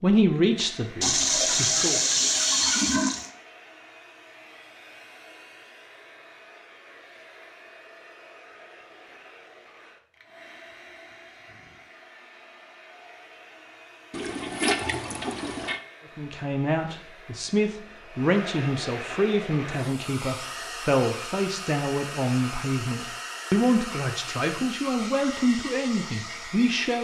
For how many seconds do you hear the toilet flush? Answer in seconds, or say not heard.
4 s.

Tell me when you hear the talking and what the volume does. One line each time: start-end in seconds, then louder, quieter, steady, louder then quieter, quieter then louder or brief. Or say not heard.
0.0-2.0 brief
16.1-26.9 steady.